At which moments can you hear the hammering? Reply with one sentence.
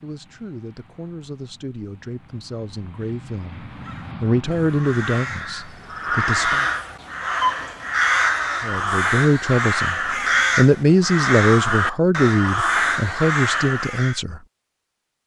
The hammering can't be heard in this clip.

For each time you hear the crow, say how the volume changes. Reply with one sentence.
You can hear the crow from 3.7 to 14.2 s, getting louder.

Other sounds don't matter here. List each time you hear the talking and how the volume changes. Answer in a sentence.
The talking can be heard from 0.0 to 6.7 s, getting louder then quieter; and from 8.6 to 14.4 s, getting louder then quieter.